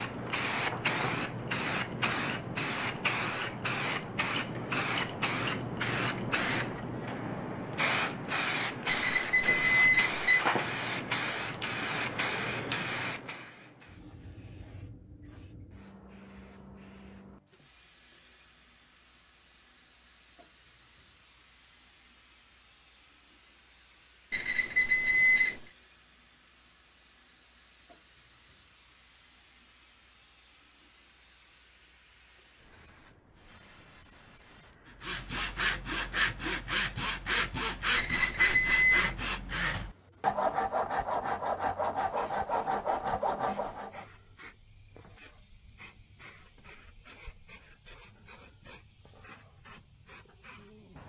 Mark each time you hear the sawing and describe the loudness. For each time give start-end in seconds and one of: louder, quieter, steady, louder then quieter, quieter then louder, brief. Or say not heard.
35.0-44.0 steady.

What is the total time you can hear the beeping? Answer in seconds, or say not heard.
4 s.